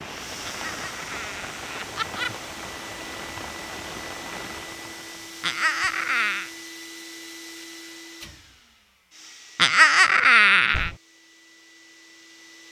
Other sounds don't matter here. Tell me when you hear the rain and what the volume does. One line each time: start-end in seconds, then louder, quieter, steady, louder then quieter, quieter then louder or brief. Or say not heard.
0.0-6.7 quieter.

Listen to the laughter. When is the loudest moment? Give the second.
10 s.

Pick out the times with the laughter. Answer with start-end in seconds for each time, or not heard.
0.5-2.4, 5.4-6.5, 9.6-10.9.